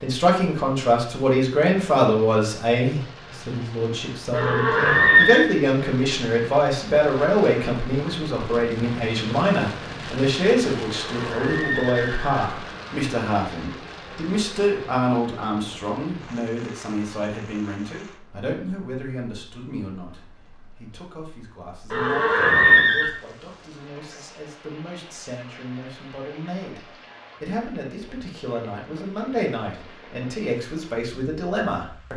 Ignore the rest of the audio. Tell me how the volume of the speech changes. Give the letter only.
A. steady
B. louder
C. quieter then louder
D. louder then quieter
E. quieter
C.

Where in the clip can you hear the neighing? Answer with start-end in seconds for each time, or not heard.
4.3-5.5, 11.0-13.1, 21.9-23.1.